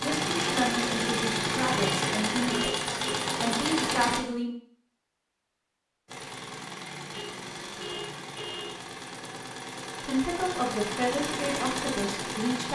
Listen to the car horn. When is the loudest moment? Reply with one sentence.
The loudest moment of the car horn is at 3 seconds.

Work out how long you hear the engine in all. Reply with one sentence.
The engine can be heard for 11 seconds in total.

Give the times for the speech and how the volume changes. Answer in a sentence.
You can hear the speech from 0.0 to 4.5 s, getting quieter then louder; and briefly from 10.0 to 12.6 s.